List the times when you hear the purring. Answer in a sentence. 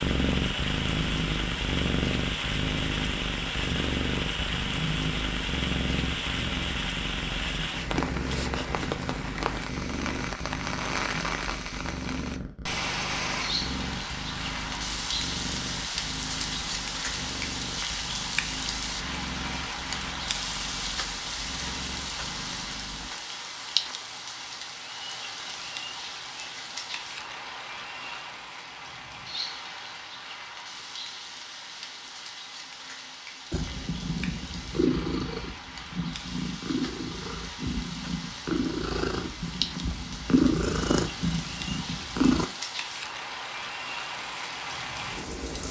You can hear the purring from 0.0 to 23.1 s and from 33.5 to 42.5 s.